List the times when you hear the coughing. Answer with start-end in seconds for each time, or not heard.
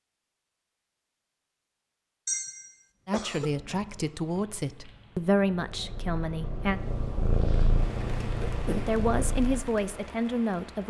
2.2-3.5, 8.4-8.9.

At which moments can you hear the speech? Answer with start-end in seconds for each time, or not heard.
3.0-6.8, 8.8-10.8.